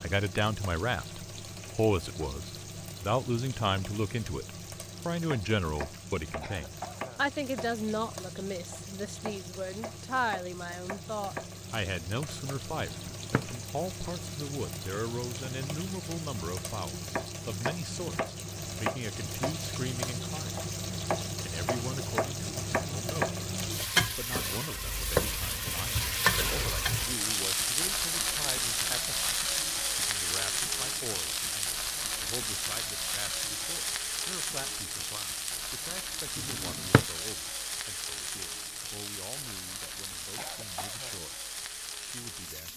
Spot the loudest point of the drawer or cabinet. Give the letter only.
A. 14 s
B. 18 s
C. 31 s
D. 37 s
D.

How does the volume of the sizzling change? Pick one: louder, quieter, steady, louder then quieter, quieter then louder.
louder then quieter.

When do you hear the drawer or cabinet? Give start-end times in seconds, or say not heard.
12.9-13.6, 36.4-37.0.